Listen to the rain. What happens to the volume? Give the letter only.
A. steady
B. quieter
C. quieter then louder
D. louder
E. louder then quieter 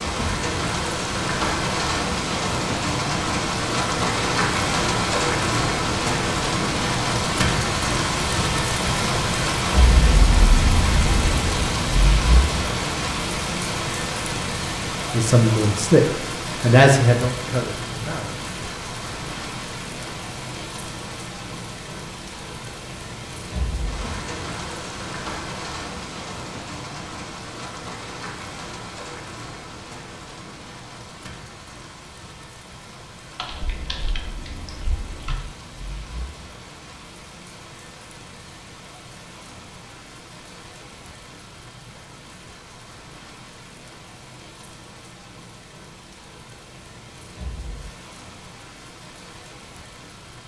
B.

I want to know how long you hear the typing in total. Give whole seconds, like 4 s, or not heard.
2 s.